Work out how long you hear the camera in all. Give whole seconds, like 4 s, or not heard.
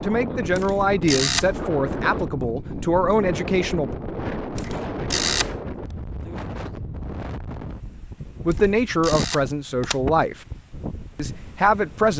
3 s.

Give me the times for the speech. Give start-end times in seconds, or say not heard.
0.0-3.9, 8.4-10.4, 11.2-12.1.